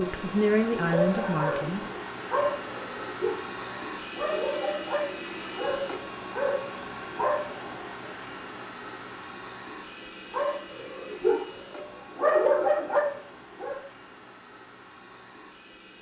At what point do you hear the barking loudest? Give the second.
12 s.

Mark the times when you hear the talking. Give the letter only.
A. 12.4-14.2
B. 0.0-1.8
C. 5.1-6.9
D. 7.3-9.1
B.